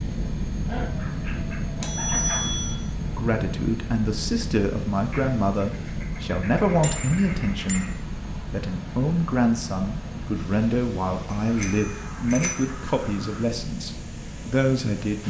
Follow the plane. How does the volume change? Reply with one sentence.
The volume of the plane goes down.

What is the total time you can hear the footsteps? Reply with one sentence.
You can't hear the footsteps here.